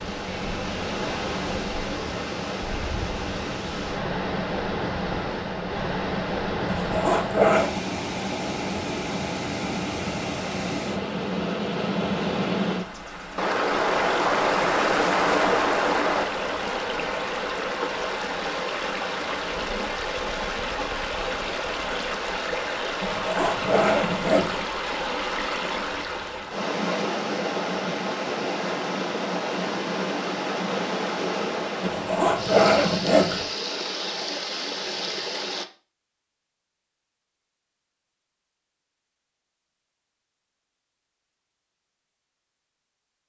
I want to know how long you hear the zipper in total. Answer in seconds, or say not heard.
4 s.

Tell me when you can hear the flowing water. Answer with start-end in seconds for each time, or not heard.
0.0-35.6.